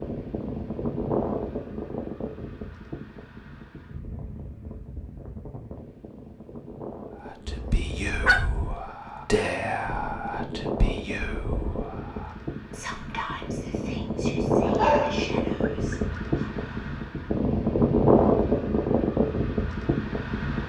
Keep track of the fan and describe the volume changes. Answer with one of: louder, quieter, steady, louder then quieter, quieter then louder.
quieter then louder.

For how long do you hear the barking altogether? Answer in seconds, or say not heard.
2 s.